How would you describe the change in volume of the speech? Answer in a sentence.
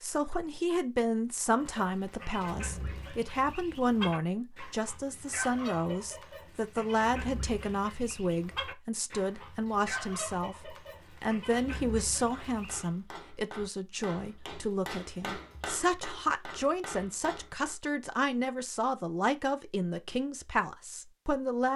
The loudness of the speech stays about the same.